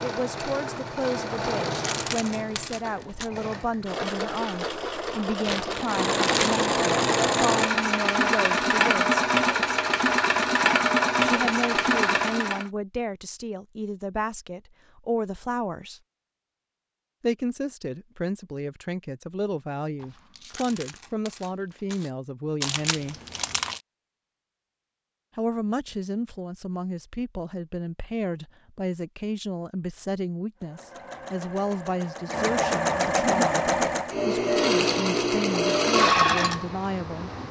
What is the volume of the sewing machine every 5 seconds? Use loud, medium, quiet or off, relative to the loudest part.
medium, loud, loud, off, off, off, loud, loud.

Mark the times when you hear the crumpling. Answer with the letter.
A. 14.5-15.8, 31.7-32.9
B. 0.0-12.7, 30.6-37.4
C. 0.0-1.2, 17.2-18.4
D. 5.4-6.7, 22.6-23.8
D.